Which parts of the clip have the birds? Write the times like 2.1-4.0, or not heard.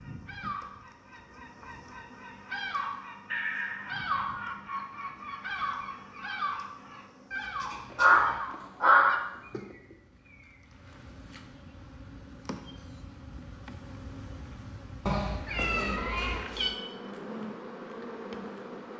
0.0-10.7.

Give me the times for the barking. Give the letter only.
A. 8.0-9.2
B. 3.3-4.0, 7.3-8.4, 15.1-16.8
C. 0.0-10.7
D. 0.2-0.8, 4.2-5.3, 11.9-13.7
A.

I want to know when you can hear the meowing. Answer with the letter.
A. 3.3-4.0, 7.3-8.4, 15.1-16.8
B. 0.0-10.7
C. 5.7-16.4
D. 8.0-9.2
A.